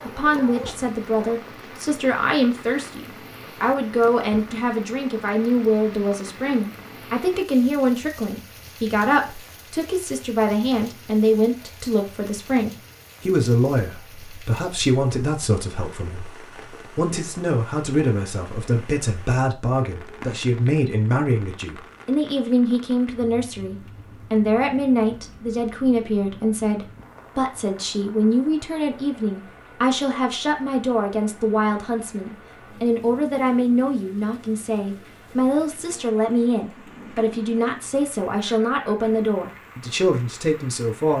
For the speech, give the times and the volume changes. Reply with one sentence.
You can hear the speech from 0.0 to 41.1 s, at a steady volume.